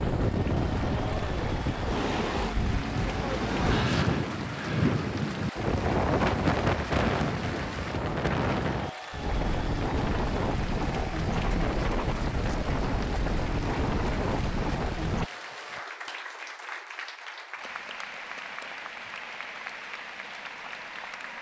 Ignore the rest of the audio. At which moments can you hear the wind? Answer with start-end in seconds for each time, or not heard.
0.0-15.2.